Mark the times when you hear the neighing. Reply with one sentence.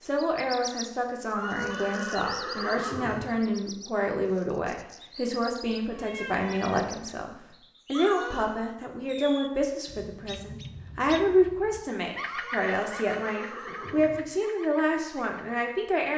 You can hear the neighing from 1.3 to 3.2 s, from 7.9 to 8.6 s and from 12.2 to 14.2 s.